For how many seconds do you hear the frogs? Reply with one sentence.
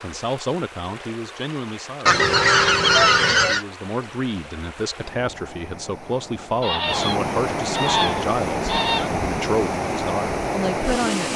The frogs can't be heard in this clip.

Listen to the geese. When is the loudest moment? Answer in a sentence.
The loudest moment of the geese is at 3 seconds.